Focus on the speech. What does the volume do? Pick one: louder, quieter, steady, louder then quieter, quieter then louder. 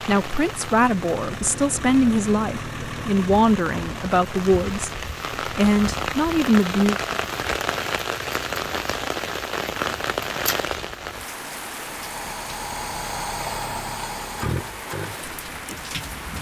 steady.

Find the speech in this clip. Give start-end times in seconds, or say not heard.
0.1-7.0.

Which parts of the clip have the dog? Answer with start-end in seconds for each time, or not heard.
not heard.